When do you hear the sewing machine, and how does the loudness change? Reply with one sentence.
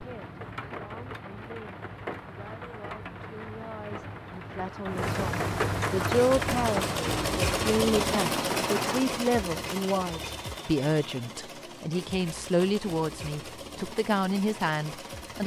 You can hear the sewing machine from 6.0 to 15.4 s, getting quieter.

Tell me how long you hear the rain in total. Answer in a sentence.
The rain can be heard for 9 seconds in total.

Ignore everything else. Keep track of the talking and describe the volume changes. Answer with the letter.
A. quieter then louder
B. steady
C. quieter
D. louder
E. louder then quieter
D.